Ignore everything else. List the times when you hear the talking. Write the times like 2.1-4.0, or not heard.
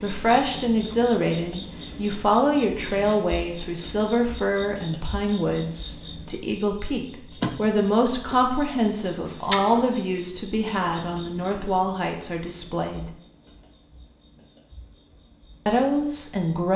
0.0-13.1, 15.7-16.7.